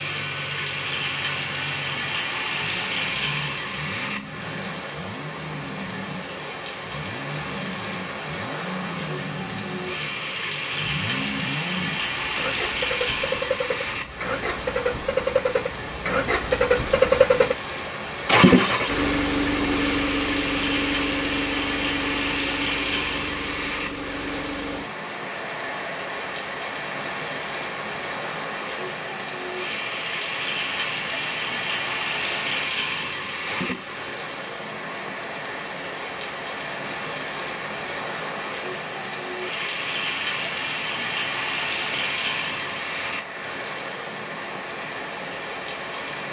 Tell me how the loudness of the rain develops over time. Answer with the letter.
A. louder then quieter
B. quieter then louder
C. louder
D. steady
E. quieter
D.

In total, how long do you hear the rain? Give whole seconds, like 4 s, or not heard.
46 s.